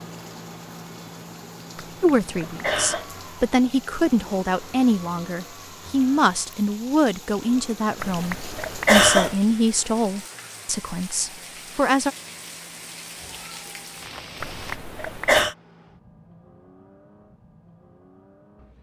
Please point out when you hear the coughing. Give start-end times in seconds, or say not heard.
1.8-3.0, 8.0-9.3, 14.4-15.6.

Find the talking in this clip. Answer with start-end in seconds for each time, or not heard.
2.0-12.1.